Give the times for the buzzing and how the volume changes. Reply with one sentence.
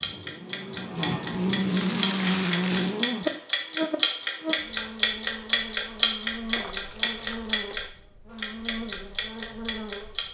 The buzzing can be heard from 0.0 to 10.3 s, getting quieter.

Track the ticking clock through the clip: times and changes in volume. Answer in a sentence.
The ticking clock can be heard from 0.0 to 10.3 s, getting louder then quieter.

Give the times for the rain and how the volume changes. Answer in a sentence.
The rain can't be heard in this clip.